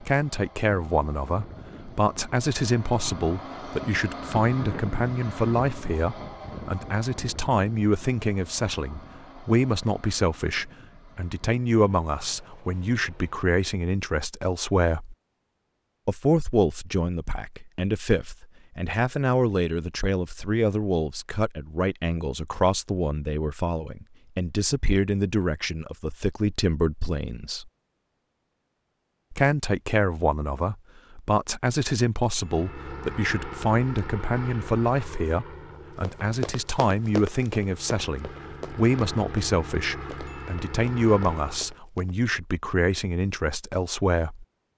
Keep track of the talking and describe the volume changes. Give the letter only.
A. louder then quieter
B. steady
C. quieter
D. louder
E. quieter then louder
B.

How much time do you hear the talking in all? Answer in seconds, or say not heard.
42 s.